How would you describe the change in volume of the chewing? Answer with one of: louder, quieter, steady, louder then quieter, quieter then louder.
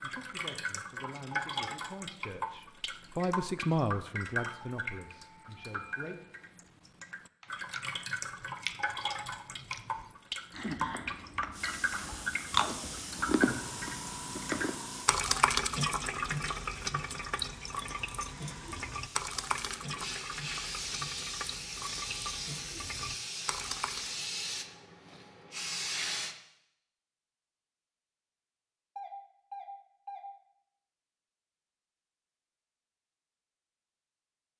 quieter then louder.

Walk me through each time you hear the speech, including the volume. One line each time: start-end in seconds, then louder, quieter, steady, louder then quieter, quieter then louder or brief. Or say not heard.
0.0-6.2 louder then quieter.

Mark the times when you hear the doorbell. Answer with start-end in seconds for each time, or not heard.
4.3-6.3, 28.9-30.2.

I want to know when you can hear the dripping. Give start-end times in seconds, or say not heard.
0.0-24.2.